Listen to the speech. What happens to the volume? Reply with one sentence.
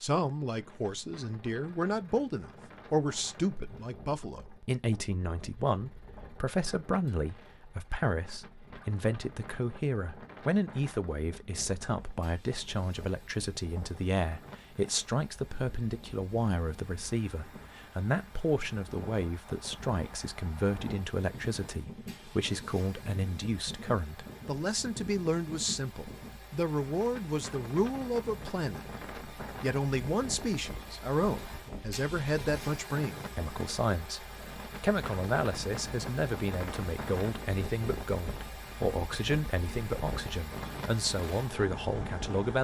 The volume of the speech stays about the same.